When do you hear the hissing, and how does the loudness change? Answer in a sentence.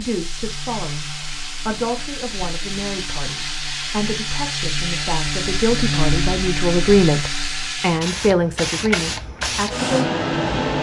You can hear the hissing from 0.0 to 10.7 s, getting louder.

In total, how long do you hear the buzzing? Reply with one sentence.
You can hear the buzzing for 8 seconds altogether.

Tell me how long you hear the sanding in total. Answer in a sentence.
You can't hear the sanding here.